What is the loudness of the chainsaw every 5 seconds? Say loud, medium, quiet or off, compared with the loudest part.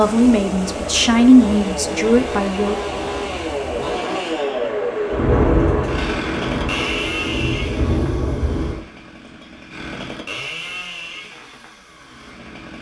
loud, loud, medium.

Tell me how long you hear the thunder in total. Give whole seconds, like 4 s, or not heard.
4 s.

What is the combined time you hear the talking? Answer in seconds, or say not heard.
3 s.